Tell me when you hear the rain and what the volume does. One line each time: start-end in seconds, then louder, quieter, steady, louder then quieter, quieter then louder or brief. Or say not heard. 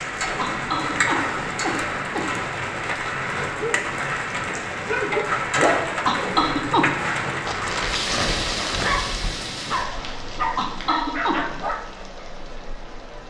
0.0-13.2 quieter.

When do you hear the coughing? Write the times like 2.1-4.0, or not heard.
0.3-2.2, 6.0-6.9, 10.6-11.4.